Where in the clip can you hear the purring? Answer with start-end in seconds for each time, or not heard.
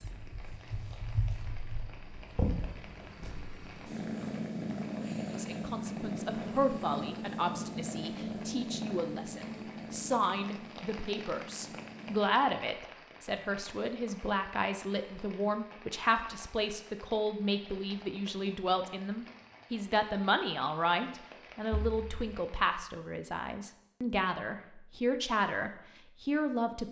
0.0-12.2.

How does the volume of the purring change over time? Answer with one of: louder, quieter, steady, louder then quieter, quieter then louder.
louder then quieter.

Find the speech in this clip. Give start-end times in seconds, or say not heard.
5.2-26.8.